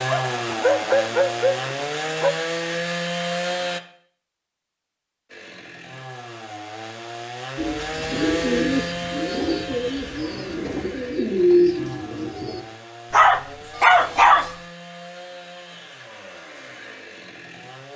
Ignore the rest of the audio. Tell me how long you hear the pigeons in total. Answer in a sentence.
You can hear the pigeons for 5 seconds altogether.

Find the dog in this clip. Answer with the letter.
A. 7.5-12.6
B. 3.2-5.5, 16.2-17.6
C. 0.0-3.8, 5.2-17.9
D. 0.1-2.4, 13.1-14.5
D.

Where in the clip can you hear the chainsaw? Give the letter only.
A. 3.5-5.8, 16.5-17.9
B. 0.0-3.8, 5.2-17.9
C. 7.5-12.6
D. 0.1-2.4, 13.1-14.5
B.